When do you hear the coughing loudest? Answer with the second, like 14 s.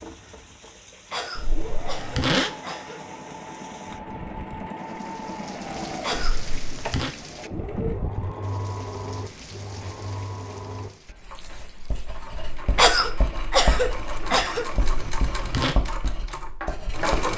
13 s.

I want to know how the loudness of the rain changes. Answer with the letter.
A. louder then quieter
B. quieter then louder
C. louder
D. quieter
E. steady
A.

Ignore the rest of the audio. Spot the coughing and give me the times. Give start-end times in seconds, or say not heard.
1.1-3.0, 6.0-6.4, 12.8-14.7.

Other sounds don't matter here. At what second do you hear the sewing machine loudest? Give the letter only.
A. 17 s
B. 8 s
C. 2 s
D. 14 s
A.